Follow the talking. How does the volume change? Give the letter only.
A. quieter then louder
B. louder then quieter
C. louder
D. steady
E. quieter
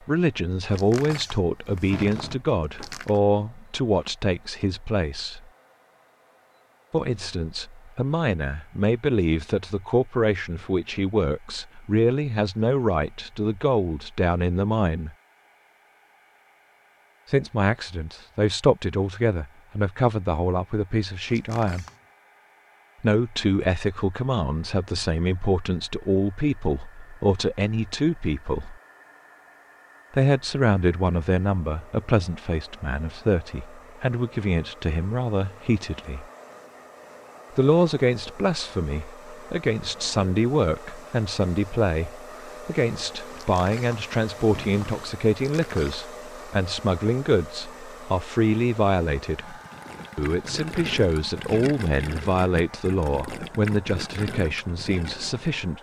D.